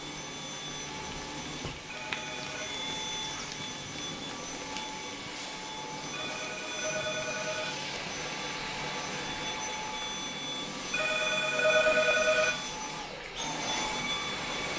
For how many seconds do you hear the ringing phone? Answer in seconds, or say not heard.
4 s.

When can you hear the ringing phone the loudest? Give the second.
12 s.